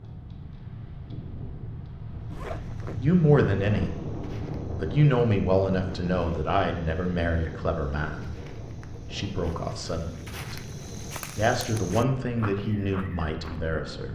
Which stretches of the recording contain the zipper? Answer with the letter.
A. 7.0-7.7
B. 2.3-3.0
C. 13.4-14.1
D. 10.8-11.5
B.